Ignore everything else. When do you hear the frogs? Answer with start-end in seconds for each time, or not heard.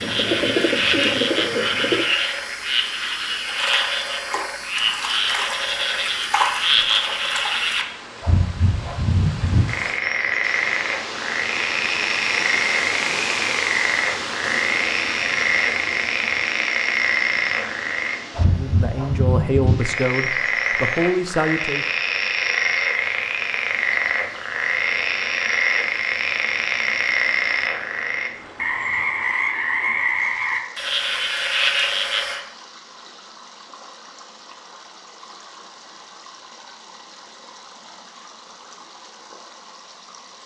0.0-32.4.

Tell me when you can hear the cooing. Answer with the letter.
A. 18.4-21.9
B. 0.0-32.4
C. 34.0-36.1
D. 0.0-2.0
D.